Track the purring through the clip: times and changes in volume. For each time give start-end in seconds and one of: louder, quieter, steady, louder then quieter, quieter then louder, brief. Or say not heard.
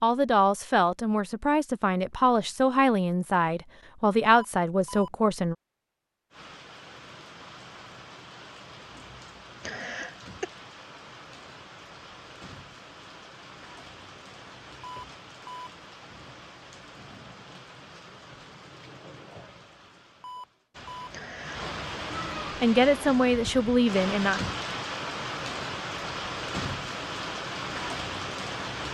not heard.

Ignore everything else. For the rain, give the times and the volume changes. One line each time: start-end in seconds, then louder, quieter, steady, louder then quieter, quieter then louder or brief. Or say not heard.
6.3-28.8 louder.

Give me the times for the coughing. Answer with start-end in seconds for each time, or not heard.
9.6-10.5, 21.1-21.8.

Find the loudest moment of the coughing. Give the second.
10 s.